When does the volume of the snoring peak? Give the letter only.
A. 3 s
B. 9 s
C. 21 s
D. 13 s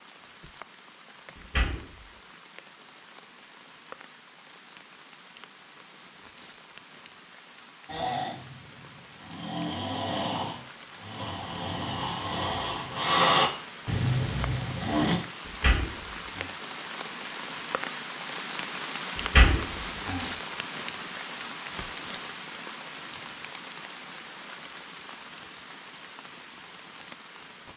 D.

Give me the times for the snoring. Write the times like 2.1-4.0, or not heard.
7.8-15.2.